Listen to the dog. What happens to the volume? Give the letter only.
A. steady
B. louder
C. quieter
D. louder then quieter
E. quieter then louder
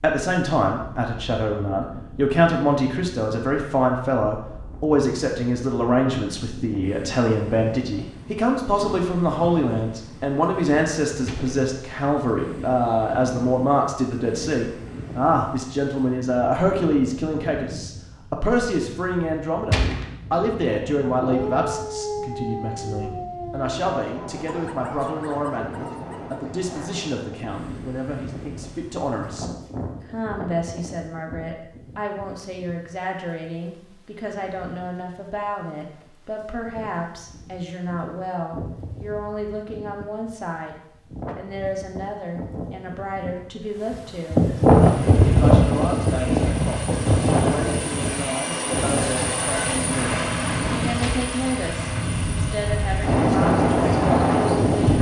C.